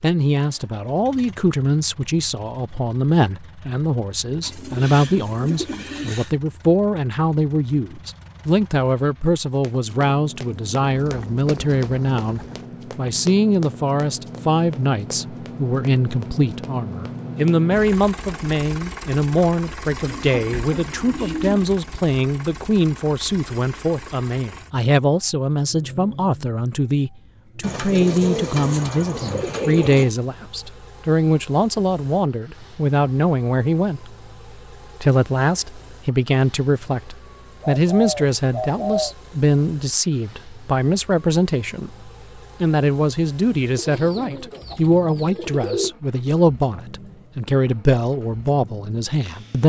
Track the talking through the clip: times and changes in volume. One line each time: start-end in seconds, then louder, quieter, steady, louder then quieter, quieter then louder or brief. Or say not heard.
0.0-34.1 steady
35.0-49.6 steady.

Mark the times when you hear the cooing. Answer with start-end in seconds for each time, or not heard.
4.4-6.3, 10.8-12.7, 20.1-21.8, 27.6-30.1, 37.6-39.1, 43.8-46.0.